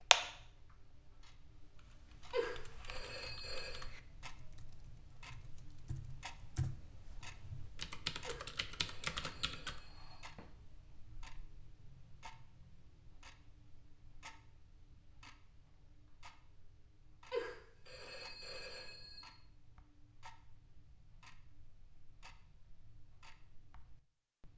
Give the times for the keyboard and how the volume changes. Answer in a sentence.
You can hear the keyboard from 1.8 to 9.8 s, getting louder.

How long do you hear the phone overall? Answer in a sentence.
The phone can be heard for 6 seconds in total.